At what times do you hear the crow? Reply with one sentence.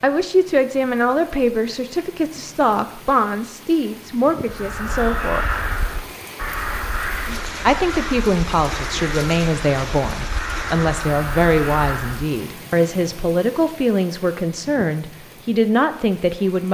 The crow can be heard from 4.5 to 12.3 s.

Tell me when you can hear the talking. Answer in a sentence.
You can hear the talking from 0.0 to 5.5 s and from 7.7 to 16.6 s.